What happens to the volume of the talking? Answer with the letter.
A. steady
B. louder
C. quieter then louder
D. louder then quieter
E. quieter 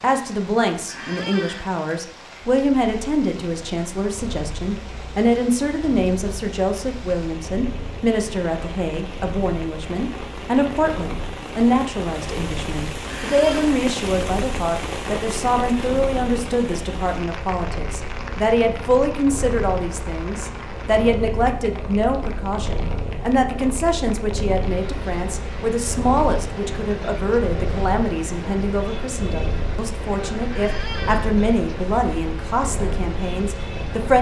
A.